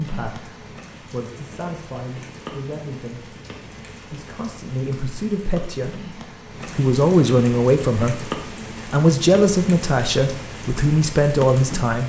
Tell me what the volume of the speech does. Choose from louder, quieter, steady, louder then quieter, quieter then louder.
louder.